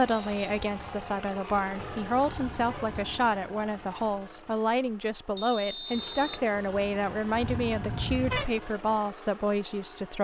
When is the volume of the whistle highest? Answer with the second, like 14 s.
6 s.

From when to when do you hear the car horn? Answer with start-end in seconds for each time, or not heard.
1.8-3.0, 7.4-8.4.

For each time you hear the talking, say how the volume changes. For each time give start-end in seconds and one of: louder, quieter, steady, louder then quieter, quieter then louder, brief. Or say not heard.
0.0-10.1 steady.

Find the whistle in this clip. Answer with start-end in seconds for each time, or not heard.
0.1-0.5, 5.3-6.4.